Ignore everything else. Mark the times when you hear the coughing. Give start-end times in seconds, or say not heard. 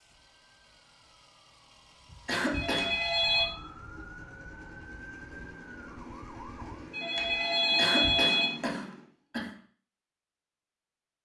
2.2-3.0, 7.8-9.6.